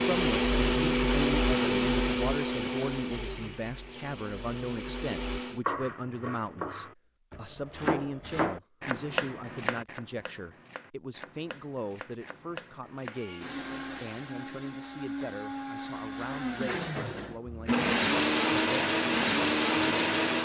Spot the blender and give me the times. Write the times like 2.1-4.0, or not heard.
0.0-5.6, 13.1-20.4.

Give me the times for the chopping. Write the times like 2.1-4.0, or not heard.
5.7-13.2.